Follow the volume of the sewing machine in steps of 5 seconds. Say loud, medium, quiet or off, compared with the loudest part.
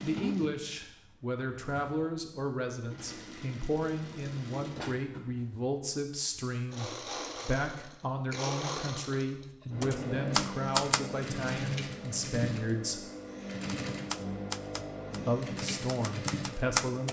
medium, loud, loud, loud.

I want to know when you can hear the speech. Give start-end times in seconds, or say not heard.
0.0-13.1, 15.2-17.0.